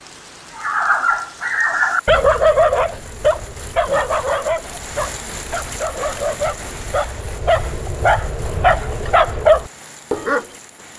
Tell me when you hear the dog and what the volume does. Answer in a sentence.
You can hear the dog from 0.6 to 10.4 s, getting quieter then louder.